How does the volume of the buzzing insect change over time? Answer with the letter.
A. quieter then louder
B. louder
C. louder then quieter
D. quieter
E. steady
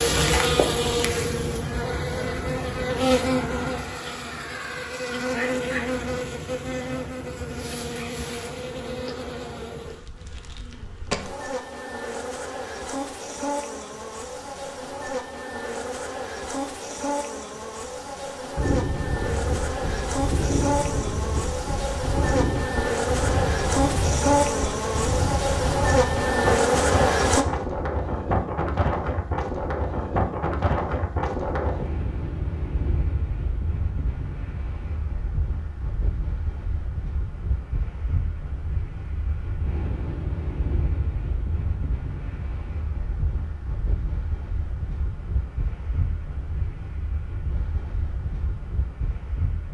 A.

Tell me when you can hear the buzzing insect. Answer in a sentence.
You can hear the buzzing insect from 0.0 to 27.4 s.